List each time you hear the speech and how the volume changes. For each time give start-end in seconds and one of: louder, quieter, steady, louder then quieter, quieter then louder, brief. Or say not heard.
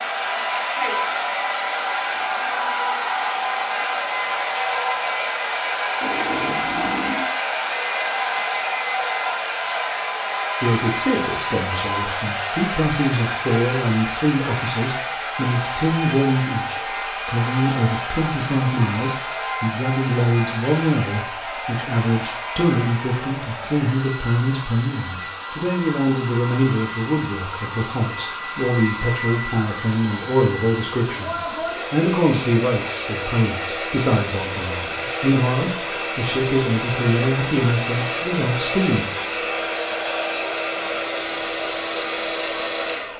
10.6-39.0 steady.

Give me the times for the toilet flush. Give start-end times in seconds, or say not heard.
6.0-7.3.